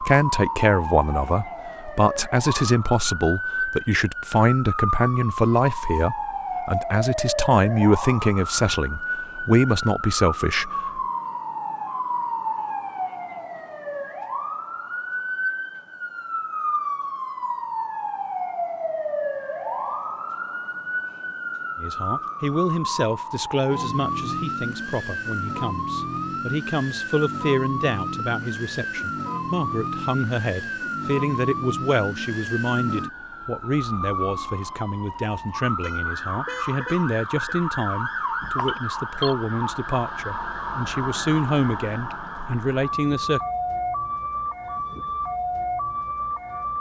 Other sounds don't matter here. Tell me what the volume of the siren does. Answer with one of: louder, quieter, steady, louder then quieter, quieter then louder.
steady.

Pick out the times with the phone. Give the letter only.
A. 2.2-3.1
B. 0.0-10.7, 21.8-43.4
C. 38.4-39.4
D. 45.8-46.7
C.